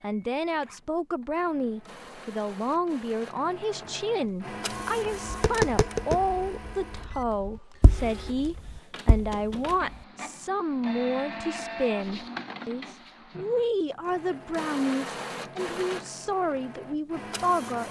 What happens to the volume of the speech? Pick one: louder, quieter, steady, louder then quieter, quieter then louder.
steady.